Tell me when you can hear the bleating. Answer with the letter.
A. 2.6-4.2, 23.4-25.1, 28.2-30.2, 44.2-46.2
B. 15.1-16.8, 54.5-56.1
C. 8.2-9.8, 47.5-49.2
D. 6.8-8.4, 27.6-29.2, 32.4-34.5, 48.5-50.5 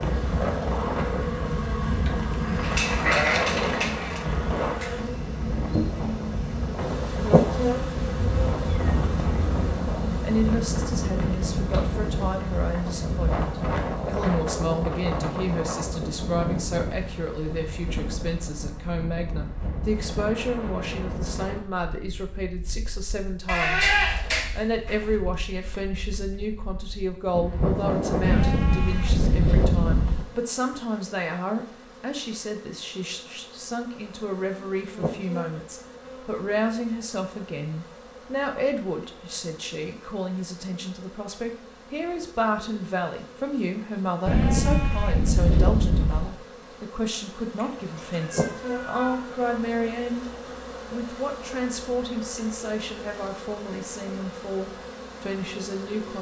A.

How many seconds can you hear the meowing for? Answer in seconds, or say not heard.
3 s.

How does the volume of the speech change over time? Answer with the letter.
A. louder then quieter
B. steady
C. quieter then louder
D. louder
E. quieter
B.